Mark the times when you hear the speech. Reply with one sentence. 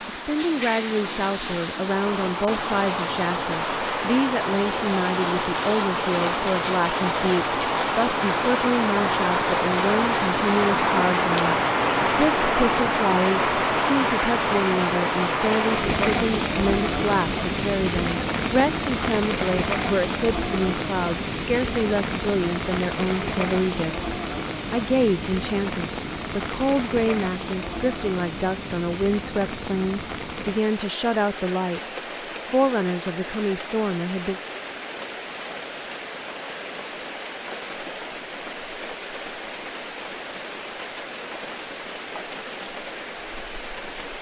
You can hear the speech from 0.1 to 31.8 s and from 32.5 to 34.4 s.